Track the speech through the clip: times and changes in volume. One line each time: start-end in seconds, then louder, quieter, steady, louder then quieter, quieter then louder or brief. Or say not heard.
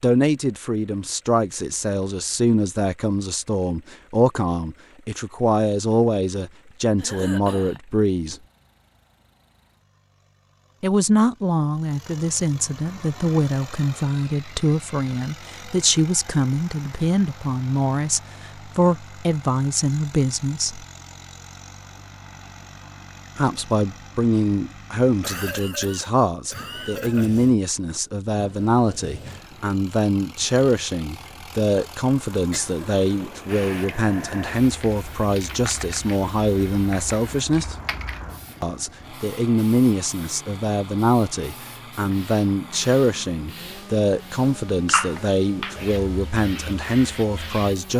0.0-8.3 steady
10.8-20.9 steady
23.4-37.8 steady
38.6-47.9 steady.